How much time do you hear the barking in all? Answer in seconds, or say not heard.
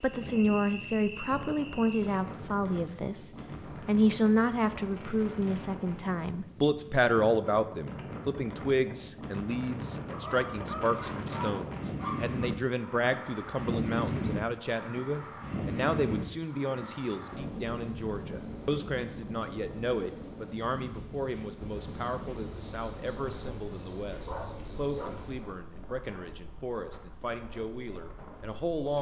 3 s.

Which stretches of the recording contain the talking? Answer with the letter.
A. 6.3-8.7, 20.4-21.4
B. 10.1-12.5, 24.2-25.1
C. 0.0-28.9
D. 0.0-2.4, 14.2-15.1
C.